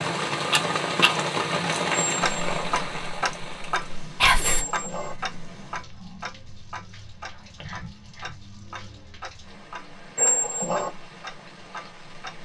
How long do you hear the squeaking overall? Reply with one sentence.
You can hear the squeaking for 2 seconds altogether.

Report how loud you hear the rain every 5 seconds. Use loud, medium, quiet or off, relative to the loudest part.
loud, quiet, quiet.